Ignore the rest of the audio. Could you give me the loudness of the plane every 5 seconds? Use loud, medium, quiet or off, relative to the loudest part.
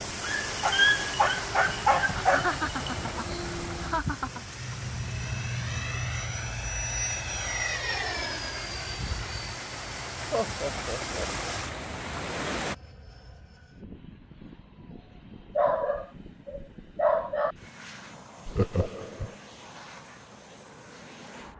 medium, loud, quiet, quiet, quiet.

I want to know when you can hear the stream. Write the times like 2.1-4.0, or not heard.
0.0-12.8.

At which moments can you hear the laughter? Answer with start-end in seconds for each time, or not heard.
2.1-4.4, 10.3-11.6, 18.4-19.4.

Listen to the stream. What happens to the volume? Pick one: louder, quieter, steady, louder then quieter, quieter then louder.
quieter then louder.